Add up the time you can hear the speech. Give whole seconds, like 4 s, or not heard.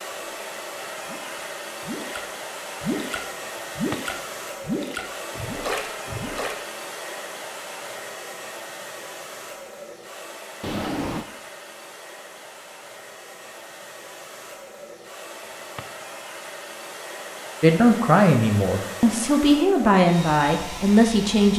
4 s.